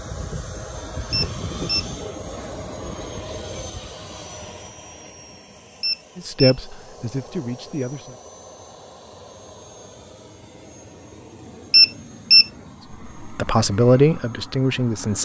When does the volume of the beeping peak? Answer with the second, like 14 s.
12 s.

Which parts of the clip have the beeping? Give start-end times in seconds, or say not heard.
1.1-1.9, 5.8-6.5, 11.7-12.4.